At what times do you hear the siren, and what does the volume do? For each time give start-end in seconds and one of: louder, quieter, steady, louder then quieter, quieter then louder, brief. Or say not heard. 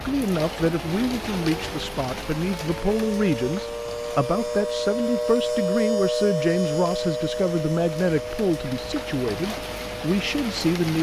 0.0-10.7 louder then quieter.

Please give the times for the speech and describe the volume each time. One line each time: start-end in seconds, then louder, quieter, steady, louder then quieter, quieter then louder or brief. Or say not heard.
0.1-10.9 steady.